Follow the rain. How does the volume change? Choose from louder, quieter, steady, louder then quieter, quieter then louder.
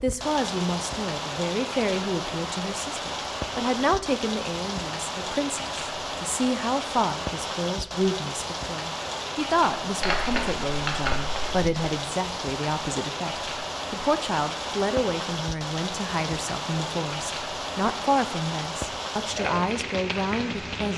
steady.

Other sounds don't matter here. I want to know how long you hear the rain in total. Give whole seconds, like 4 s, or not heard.
21 s.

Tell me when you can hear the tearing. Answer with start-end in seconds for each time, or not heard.
10.0-11.7.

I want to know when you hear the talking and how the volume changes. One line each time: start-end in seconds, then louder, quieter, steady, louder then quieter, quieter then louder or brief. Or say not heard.
0.0-20.9 steady.